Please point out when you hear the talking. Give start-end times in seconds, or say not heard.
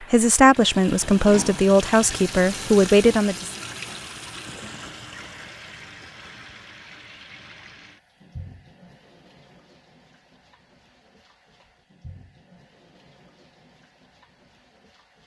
0.1-3.5.